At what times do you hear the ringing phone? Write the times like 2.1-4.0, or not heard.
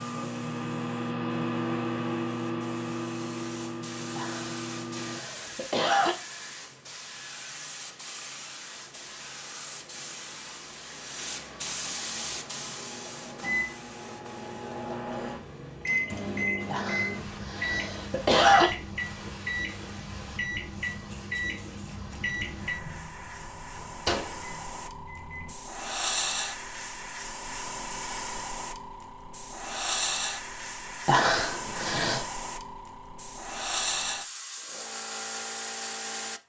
not heard.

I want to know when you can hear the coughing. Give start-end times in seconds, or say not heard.
4.2-6.2, 16.6-18.7, 31.1-32.2.